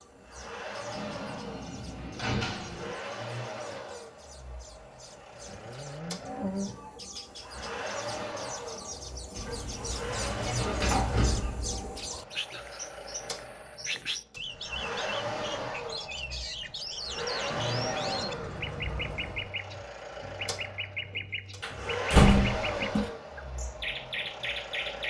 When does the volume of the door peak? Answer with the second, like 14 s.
22 s.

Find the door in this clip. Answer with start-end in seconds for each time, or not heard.
0.9-3.0, 9.3-11.9, 21.6-23.1.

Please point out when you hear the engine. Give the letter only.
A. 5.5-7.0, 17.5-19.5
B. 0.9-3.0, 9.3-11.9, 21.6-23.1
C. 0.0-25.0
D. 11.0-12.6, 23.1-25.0
C.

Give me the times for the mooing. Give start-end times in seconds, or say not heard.
5.5-7.0, 17.5-19.5.